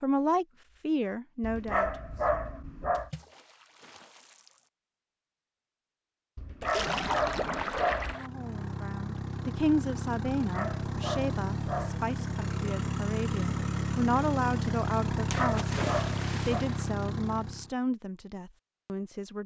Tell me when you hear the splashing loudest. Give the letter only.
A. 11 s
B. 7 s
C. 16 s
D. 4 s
B.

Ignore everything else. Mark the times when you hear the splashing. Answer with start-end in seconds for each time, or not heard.
2.9-4.7, 6.6-8.3, 15.3-16.9.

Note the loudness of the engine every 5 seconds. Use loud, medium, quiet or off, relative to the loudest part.
off, medium, loud, loud.